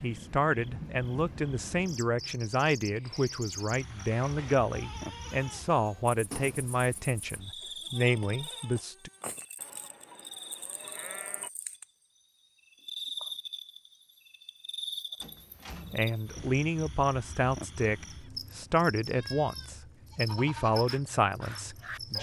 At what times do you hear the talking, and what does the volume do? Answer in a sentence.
The talking can be heard from 0.0 to 9.1 s, at a steady volume; and from 15.9 to 22.1 s, at a steady volume.